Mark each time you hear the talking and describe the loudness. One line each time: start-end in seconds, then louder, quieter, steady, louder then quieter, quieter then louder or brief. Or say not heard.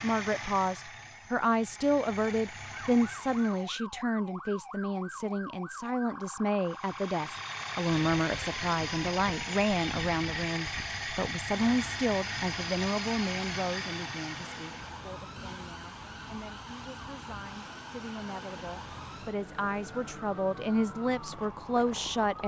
0.0-22.4 quieter then louder.